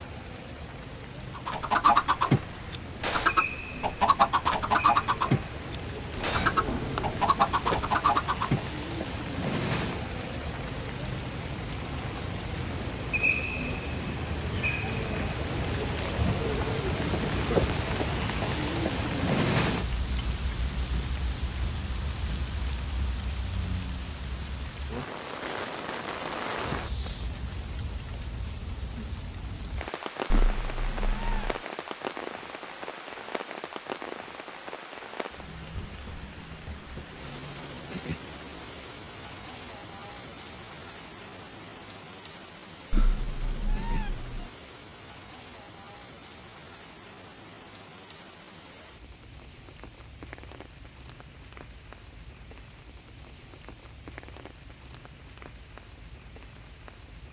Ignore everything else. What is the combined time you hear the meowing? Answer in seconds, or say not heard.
4 s.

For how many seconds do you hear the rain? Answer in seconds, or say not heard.
57 s.